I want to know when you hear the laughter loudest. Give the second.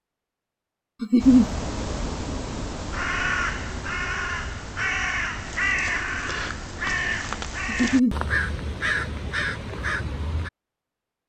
1 s.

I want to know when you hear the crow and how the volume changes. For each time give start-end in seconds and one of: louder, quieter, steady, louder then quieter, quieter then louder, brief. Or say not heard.
1.2-10.5 steady.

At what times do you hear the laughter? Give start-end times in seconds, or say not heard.
1.0-1.4, 7.7-8.2.